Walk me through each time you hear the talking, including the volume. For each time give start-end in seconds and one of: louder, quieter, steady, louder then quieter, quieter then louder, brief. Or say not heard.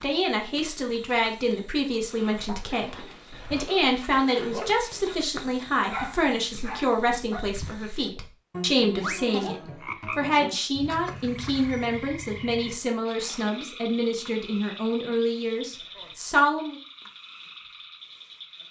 0.0-16.8 steady.